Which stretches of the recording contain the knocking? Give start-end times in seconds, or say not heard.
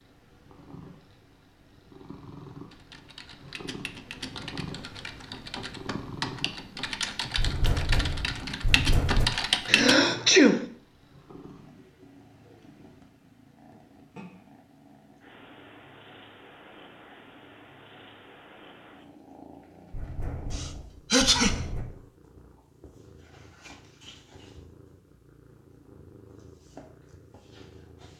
7.3-9.2, 19.9-21.9.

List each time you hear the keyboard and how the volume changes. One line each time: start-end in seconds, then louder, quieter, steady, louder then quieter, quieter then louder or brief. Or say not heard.
2.7-9.9 louder.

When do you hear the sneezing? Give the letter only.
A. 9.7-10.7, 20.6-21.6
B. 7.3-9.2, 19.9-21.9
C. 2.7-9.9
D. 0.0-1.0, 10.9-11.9
A.